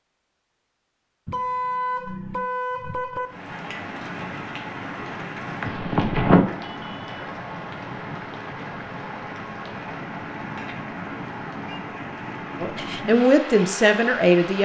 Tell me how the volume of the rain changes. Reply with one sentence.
The loudness of the rain goes up, then down.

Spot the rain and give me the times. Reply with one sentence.
The rain can be heard from 3.2 to 14.5 s.